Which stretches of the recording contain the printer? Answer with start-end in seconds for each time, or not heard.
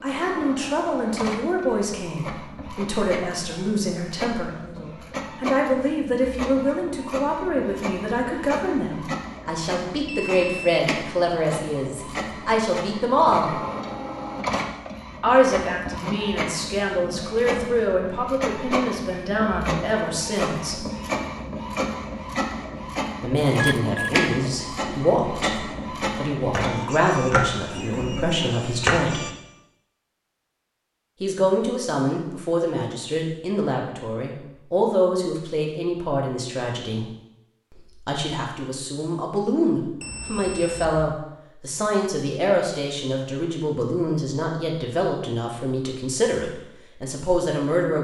0.0-29.4.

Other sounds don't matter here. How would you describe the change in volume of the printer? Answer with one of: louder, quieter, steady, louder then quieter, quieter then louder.
louder.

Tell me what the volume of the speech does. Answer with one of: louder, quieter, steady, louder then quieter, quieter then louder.
steady.